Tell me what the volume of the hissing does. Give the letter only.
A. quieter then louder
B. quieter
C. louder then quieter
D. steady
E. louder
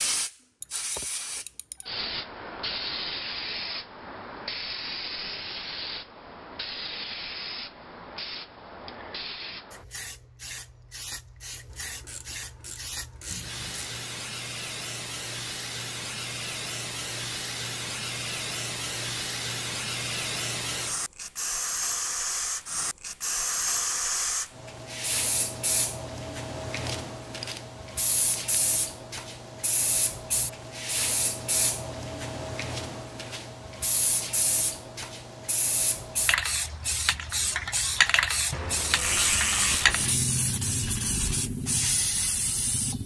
E.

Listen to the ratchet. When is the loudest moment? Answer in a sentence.
The volume of the ratchet peaks at 39 seconds.